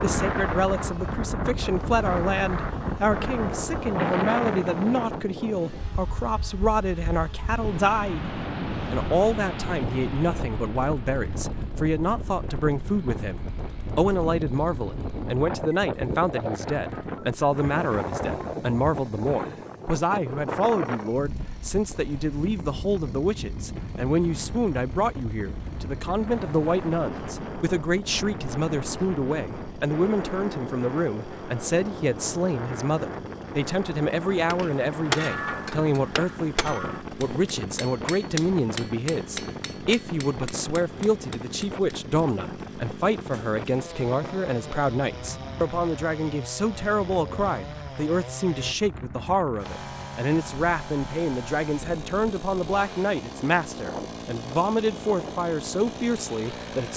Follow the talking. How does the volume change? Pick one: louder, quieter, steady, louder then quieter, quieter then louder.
steady.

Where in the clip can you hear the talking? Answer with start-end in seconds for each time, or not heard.
0.0-56.9.